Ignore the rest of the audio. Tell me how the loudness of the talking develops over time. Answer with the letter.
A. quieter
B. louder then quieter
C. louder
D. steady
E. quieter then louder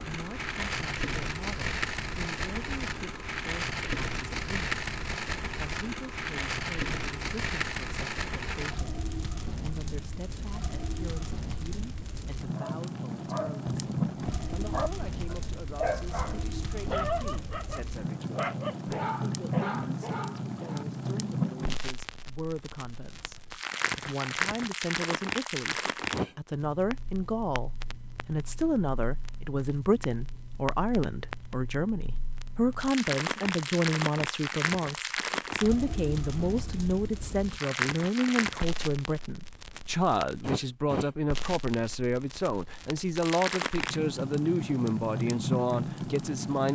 C.